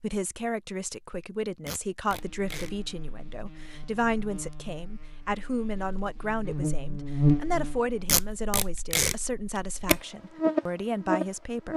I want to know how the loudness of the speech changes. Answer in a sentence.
The volume of the speech stays about the same.